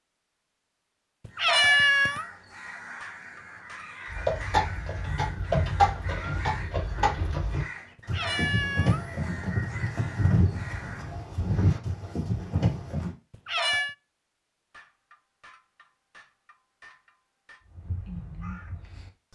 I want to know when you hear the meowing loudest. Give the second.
2 s.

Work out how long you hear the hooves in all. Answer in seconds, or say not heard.
9 s.